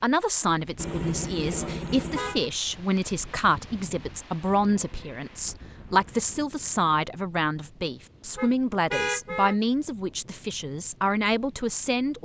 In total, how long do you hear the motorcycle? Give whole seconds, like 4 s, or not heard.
not heard.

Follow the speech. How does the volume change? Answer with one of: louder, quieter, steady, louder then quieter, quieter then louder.
steady.